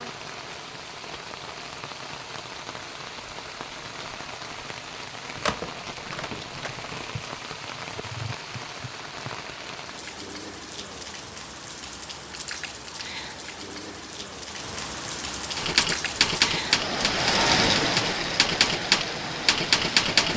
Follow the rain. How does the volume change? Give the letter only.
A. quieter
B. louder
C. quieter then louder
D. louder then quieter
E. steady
B.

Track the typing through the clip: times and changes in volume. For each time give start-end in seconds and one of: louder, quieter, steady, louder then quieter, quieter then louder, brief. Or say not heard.
15.6-20.3 quieter then louder.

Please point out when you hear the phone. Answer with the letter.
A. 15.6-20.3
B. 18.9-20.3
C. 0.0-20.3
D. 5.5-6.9
D.